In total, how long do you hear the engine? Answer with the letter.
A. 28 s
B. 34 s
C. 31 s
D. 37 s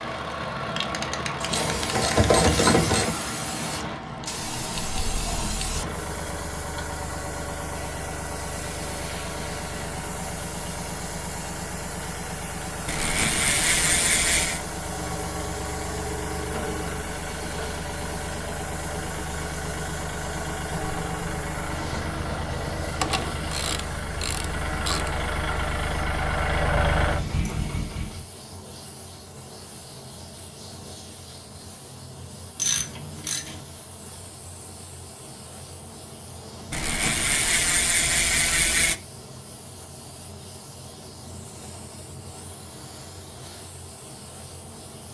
A.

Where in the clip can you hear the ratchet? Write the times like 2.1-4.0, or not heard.
1.5-3.1, 12.8-14.6, 23.0-25.1, 32.5-33.6, 36.7-39.0.